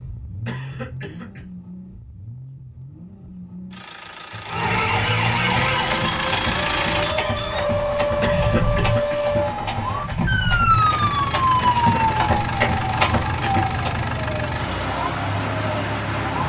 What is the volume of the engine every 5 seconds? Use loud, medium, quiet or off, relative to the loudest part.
medium, loud, loud, loud.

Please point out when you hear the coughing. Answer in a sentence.
You can hear the coughing from 0.5 to 1.4 s, from 8.2 to 9.3 s and from 11.6 to 12.2 s.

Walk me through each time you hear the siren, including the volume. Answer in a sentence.
The siren can be heard from 4.4 to 16.4 s, getting quieter.